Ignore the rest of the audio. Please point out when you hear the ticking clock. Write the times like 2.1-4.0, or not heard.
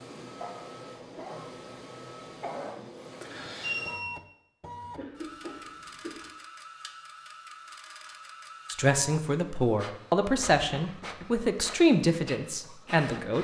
not heard.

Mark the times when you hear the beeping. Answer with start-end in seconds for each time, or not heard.
3.3-4.2.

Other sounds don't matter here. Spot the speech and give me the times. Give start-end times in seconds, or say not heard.
8.7-13.3.